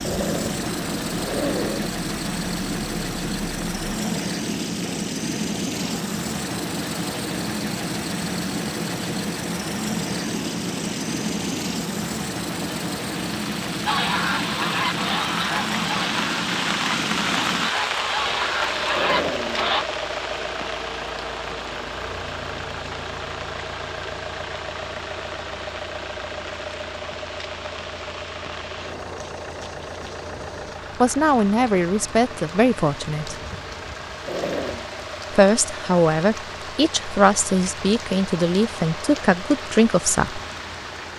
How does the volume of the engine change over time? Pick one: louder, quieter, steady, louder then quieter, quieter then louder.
quieter.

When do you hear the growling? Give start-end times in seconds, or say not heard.
0.0-1.9, 18.9-19.8, 34.2-34.9.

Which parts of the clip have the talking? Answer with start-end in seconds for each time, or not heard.
31.0-33.4, 35.3-40.4.